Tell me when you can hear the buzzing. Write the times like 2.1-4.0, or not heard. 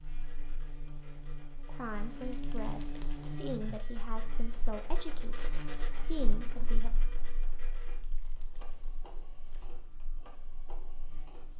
0.0-11.5.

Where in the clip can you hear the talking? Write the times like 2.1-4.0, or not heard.
1.6-6.9.